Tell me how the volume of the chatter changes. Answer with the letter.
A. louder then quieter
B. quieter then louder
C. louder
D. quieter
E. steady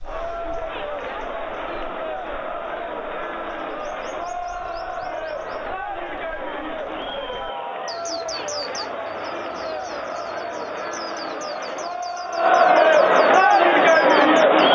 C.